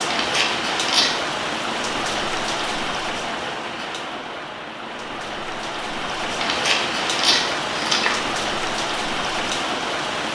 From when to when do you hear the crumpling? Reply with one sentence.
The crumpling can be heard from 0.1 to 1.1 s and from 6.4 to 8.2 s.